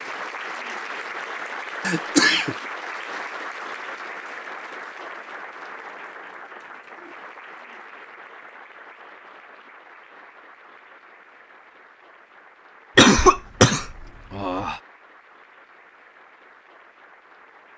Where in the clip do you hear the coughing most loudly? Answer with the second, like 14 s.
13 s.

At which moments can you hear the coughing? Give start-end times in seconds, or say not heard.
1.9-2.5, 12.9-14.8.